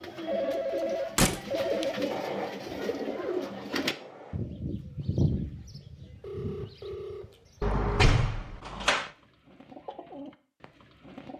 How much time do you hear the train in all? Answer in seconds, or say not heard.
2 s.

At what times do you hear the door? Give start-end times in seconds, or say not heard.
1.1-1.9, 7.6-9.1.